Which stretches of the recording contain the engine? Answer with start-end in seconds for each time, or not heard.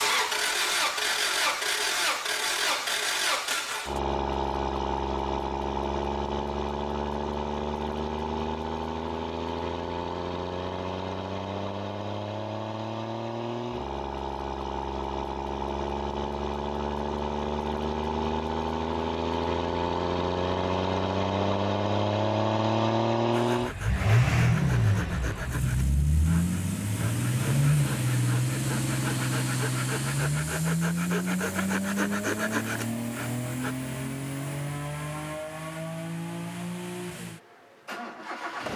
0.0-38.7.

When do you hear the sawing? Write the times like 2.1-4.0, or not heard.
23.3-33.8.